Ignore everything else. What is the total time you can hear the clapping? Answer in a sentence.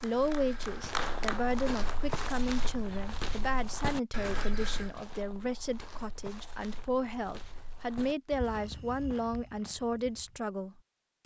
You can hear the clapping for 2 seconds altogether.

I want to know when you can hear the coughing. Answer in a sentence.
You can't hear the coughing here.